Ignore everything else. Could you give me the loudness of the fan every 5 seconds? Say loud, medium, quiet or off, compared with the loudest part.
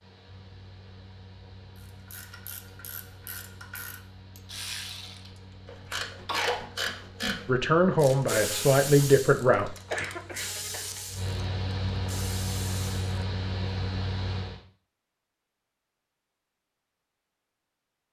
quiet, quiet, loud, off.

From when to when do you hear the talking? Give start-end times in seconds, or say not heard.
7.5-9.8.